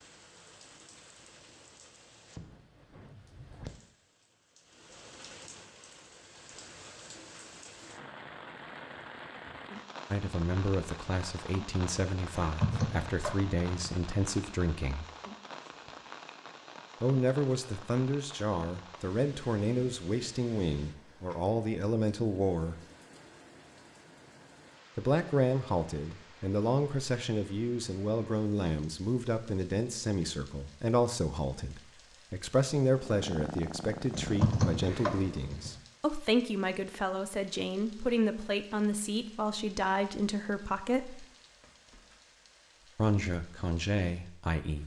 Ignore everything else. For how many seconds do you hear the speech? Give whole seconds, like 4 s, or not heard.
29 s.